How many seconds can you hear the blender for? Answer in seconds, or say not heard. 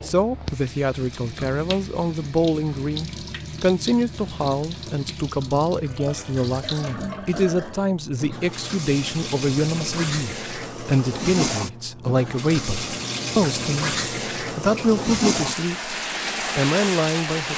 not heard.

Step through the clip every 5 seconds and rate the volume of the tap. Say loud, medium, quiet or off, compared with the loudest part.
medium, medium, loud, loud.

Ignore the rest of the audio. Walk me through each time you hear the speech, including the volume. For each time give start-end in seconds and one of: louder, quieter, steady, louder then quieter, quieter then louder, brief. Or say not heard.
0.0-15.9 steady
16.6-17.5 brief.